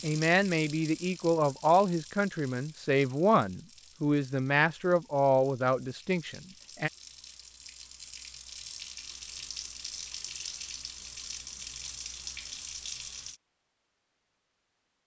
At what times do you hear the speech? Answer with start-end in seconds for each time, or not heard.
0.0-6.9.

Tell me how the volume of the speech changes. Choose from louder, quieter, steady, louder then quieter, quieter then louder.
steady.